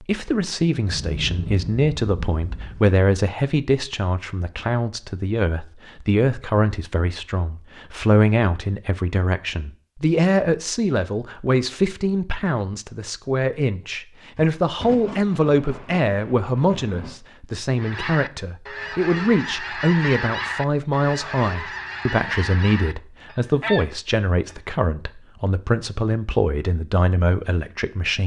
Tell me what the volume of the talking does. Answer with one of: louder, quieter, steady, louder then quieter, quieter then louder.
steady.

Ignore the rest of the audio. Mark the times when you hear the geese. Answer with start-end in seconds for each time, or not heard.
17.8-24.6.